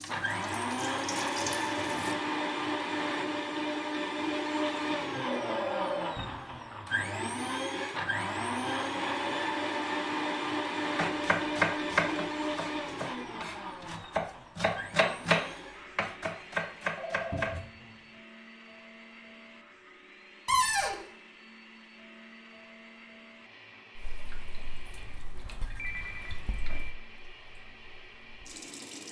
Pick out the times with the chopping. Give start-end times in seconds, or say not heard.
10.9-17.9.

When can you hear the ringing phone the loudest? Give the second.
6 s.